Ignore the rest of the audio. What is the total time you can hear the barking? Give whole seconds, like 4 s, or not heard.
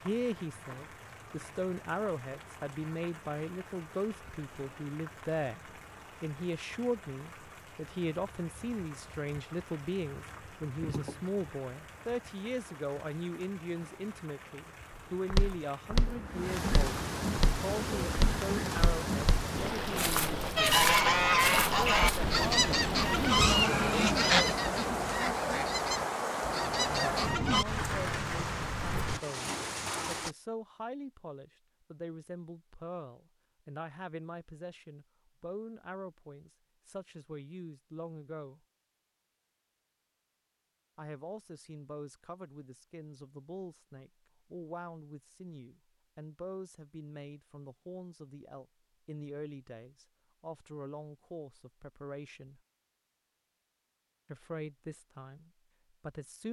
not heard.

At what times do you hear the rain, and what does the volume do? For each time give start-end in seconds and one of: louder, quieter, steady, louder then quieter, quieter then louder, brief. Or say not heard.
0.0-30.4 louder.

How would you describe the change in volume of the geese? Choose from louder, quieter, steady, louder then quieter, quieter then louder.
quieter.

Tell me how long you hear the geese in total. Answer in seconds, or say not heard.
7 s.